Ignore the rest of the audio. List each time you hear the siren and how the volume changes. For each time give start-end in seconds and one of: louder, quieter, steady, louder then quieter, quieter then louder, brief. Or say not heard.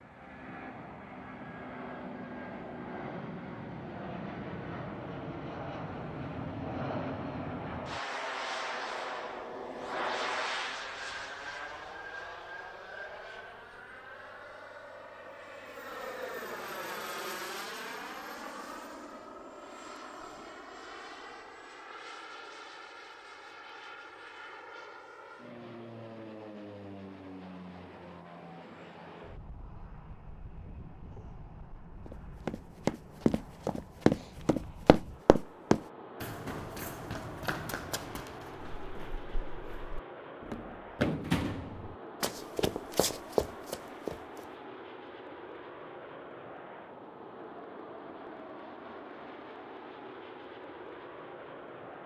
not heard.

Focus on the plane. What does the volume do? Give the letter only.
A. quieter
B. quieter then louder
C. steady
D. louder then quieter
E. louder
A.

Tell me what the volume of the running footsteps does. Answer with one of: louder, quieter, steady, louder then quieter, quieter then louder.
quieter then louder.